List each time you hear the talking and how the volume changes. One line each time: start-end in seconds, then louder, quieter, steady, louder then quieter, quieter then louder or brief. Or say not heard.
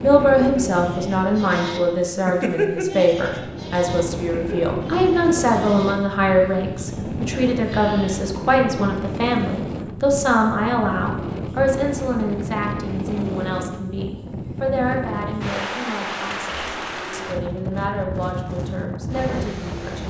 0.0-20.0 quieter.